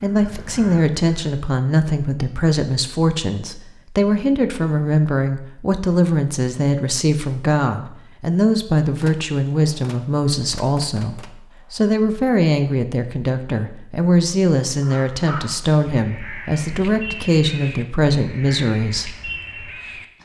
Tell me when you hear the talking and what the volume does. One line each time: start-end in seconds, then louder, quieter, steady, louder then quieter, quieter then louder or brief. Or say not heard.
0.0-19.1 steady.